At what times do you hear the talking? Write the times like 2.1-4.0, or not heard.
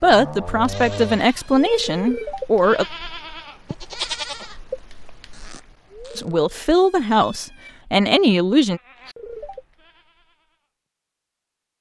0.0-2.9, 6.2-8.8.